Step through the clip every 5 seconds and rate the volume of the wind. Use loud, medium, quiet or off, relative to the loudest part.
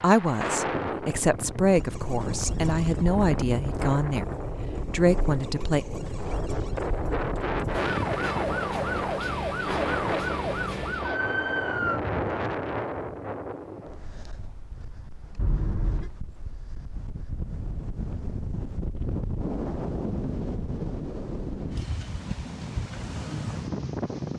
loud, loud, loud, medium, loud.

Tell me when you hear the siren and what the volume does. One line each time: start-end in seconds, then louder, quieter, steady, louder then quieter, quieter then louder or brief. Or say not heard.
1.7-12.0 louder.